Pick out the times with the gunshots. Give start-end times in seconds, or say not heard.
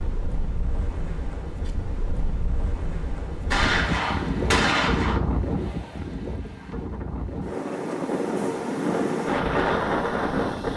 3.5-5.2.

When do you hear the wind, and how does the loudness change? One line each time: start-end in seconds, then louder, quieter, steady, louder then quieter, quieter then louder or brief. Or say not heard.
0.0-10.7 louder.